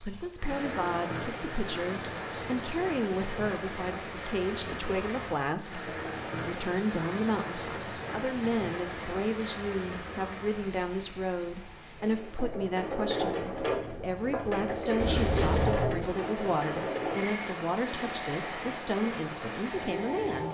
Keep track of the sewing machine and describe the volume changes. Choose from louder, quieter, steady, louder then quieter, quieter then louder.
quieter.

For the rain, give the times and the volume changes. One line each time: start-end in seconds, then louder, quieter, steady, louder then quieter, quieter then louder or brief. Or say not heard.
0.0-20.4 quieter then louder.